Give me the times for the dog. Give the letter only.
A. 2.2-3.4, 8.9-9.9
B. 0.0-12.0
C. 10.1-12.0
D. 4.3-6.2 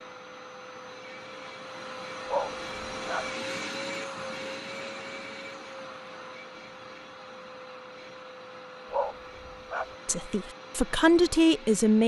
A.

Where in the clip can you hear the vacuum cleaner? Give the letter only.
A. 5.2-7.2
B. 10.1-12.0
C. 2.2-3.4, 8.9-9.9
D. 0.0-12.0
D.